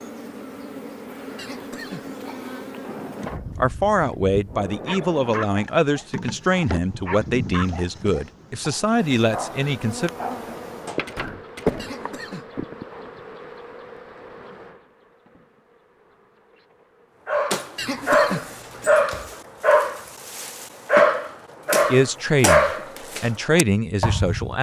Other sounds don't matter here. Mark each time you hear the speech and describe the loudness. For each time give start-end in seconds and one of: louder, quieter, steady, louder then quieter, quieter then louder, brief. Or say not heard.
3.5-10.1 steady
21.9-24.5 brief.